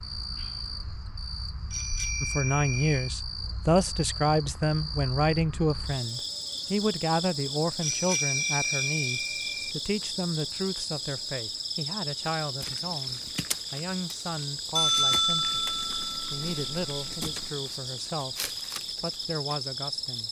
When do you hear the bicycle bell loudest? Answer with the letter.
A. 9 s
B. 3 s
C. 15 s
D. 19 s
C.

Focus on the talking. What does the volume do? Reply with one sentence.
The volume of the talking goes down.